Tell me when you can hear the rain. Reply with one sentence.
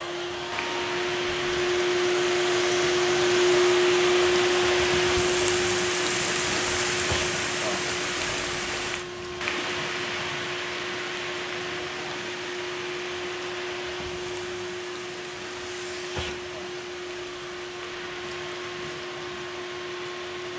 The rain can be heard from 0.1 to 20.5 s.